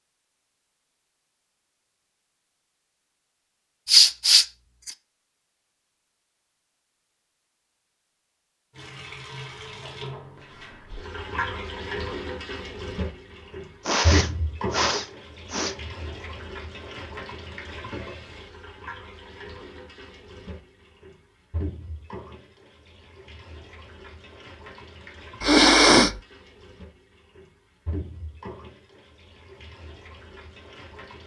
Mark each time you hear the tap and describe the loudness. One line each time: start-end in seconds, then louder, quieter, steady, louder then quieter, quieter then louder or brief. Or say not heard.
8.7-31.2 quieter.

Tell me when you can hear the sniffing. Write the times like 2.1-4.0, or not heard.
3.9-4.9, 13.8-15.8, 25.4-26.1.